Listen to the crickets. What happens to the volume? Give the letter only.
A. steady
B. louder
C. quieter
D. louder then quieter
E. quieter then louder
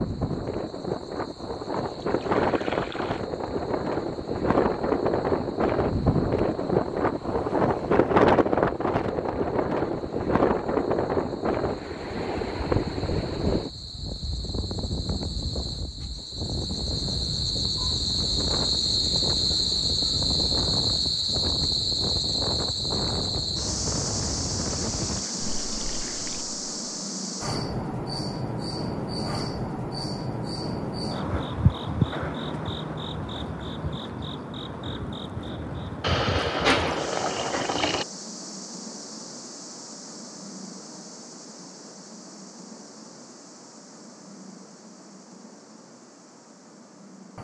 D.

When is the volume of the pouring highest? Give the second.
37 s.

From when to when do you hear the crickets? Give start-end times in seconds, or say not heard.
0.0-47.3.